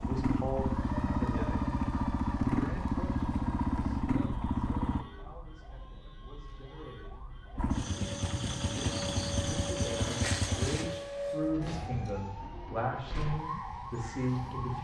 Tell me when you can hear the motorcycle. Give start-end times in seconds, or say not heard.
0.0-5.0, 7.5-10.9.